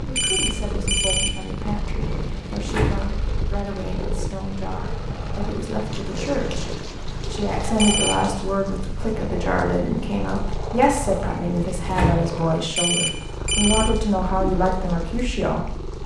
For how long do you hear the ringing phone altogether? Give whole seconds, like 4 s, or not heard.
3 s.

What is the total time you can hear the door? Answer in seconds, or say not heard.
2 s.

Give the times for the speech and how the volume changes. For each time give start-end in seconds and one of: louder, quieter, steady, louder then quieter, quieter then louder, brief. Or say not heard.
0.0-16.0 louder.